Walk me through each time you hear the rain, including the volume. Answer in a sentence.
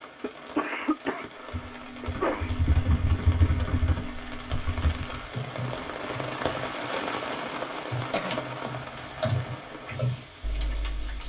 The rain can be heard from 0.0 to 11.2 s, getting louder then quieter.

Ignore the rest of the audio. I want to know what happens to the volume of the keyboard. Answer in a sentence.
The loudness of the keyboard goes down, then up.